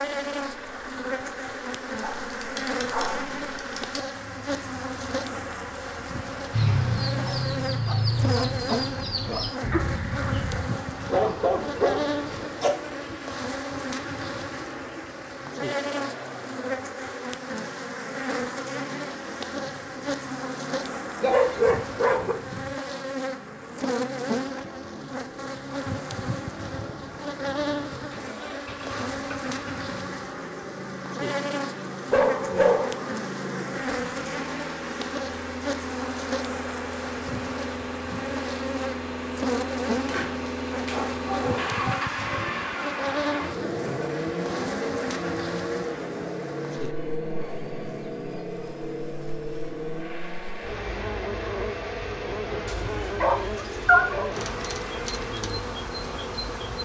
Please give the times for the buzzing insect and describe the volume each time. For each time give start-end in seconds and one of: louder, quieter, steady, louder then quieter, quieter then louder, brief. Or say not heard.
0.0-56.8 steady.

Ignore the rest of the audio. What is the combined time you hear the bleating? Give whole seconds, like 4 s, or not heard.
not heard.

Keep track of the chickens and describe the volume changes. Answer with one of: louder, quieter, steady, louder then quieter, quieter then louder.
quieter.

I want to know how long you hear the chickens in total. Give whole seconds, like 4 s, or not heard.
6 s.